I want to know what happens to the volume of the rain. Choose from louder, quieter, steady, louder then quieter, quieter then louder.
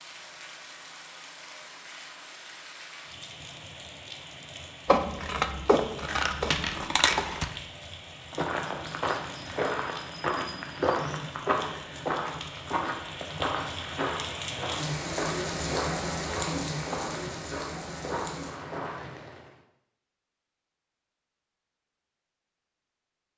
louder.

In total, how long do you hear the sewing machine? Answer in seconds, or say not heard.
not heard.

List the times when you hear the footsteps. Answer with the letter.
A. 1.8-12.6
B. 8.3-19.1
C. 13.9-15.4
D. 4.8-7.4
B.